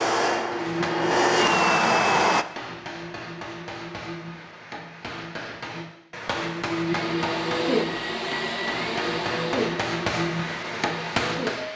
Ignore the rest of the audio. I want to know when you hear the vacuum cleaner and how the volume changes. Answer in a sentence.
You can hear the vacuum cleaner briefly from 0.0 to 2.5 s; and from 6.8 to 11.7 s, getting quieter.